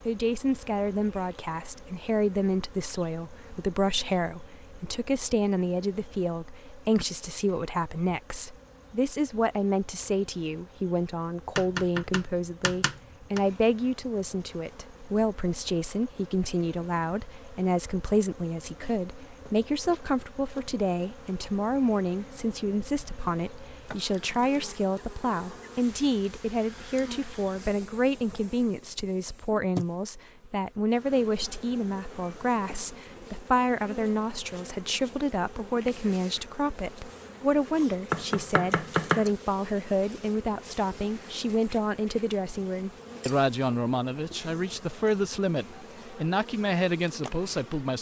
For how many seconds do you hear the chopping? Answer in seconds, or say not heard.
3 s.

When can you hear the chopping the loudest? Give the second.
39 s.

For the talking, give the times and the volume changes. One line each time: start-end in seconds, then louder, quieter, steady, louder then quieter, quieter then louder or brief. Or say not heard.
0.1-47.9 steady.